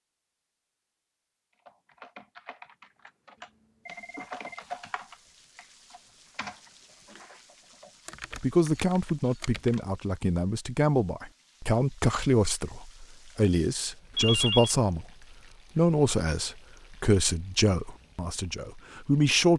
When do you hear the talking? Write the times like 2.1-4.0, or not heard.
8.3-15.1, 15.8-19.5.